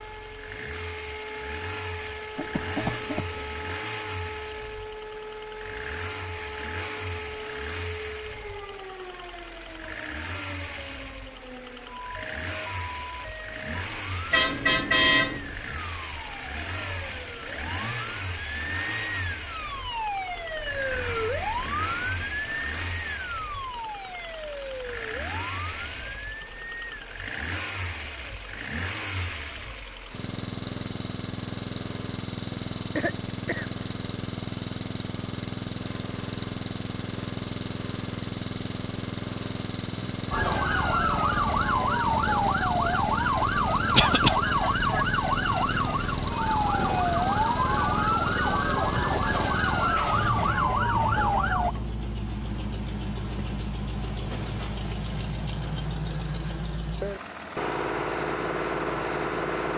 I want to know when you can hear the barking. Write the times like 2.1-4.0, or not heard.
not heard.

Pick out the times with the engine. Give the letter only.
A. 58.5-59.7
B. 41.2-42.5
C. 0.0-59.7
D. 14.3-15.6
C.